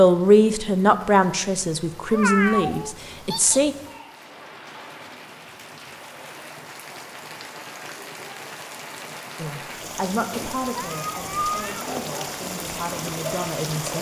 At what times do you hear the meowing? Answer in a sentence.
You can hear the meowing from 2.1 to 3.6 s and from 10.3 to 11.8 s.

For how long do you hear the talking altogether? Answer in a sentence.
The talking can be heard for 8 seconds in total.